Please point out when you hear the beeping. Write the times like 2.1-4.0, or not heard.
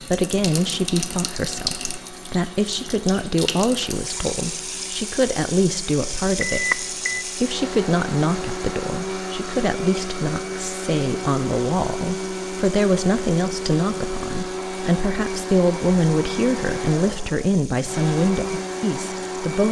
6.4-7.2.